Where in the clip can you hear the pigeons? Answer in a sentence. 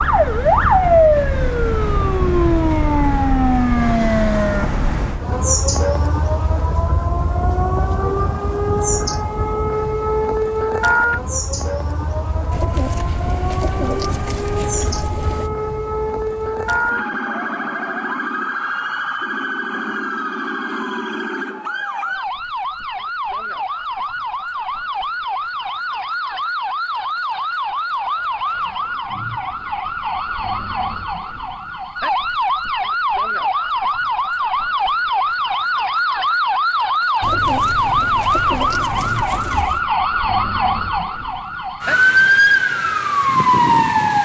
You can hear the pigeons from 12.5 to 15.5 s and from 37.2 to 39.9 s.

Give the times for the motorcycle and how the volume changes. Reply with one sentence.
The motorcycle can't be heard in this clip.